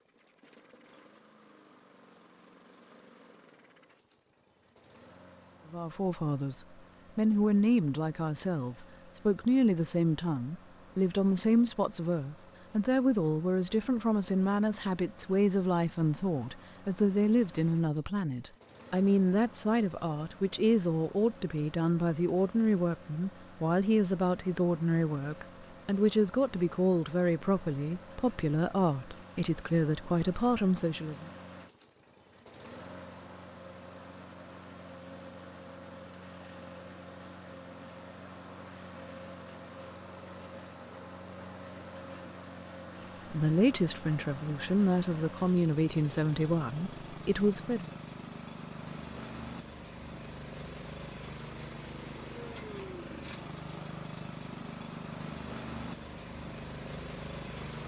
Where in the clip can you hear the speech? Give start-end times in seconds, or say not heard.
5.7-31.3, 43.3-47.9.